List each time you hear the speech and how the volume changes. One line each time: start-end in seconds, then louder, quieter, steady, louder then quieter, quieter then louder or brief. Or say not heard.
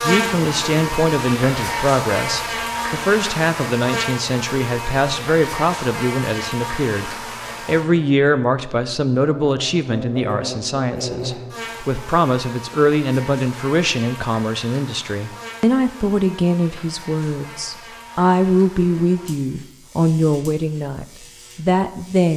0.0-22.3 steady.